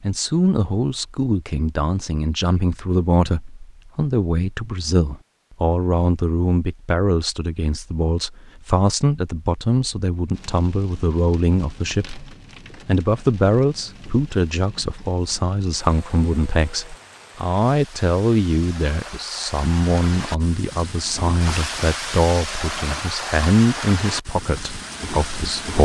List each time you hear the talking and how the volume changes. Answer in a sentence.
You can hear the talking from 0.0 to 25.7 s, at a steady volume.